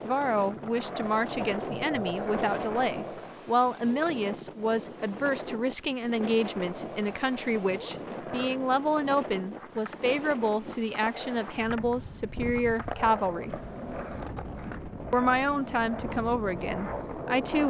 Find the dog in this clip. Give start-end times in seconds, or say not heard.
not heard.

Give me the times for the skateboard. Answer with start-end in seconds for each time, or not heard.
0.0-3.5, 6.3-17.6.